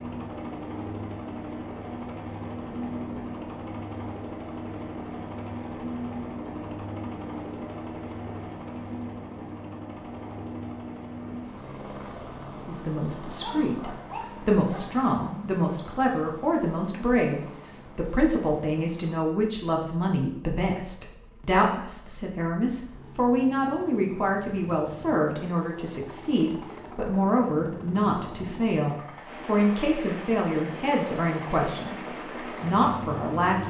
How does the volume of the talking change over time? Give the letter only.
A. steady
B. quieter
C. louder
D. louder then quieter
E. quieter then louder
A.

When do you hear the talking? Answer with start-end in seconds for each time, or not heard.
12.5-33.6.